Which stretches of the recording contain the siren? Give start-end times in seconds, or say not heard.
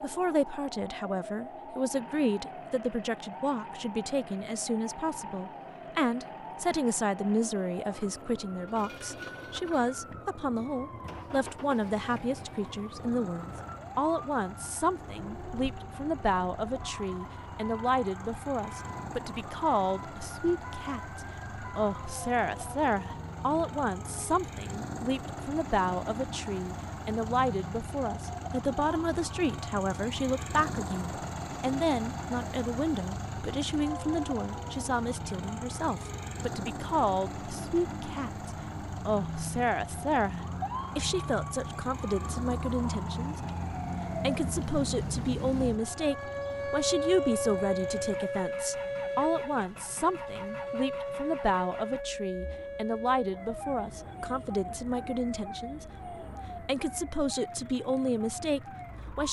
0.0-59.2.